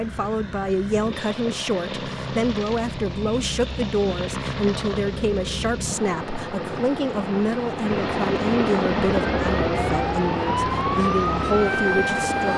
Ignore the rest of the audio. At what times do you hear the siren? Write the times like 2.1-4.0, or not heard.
9.1-12.5.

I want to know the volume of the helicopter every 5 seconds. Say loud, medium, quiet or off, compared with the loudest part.
medium, loud, loud.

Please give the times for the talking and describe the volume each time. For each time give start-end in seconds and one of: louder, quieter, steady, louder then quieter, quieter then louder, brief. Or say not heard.
0.0-12.5 steady.